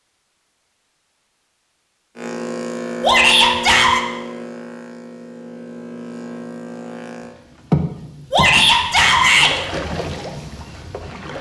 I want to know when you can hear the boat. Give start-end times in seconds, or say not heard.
2.1-11.3.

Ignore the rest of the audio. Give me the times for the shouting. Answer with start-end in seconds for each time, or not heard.
3.0-4.0, 8.3-9.5.